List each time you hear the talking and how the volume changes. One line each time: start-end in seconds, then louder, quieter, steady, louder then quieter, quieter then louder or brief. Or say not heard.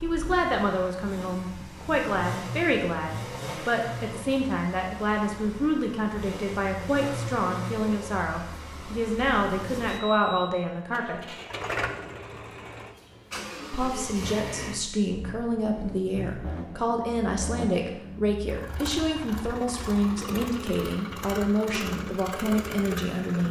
0.0-11.2 steady
13.7-23.4 steady.